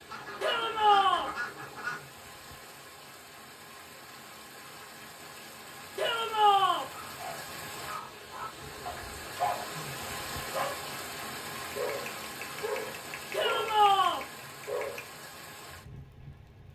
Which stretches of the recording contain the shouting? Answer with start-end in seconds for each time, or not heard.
0.4-1.3, 6.0-6.8, 13.3-14.2.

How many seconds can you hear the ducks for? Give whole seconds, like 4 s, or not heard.
2 s.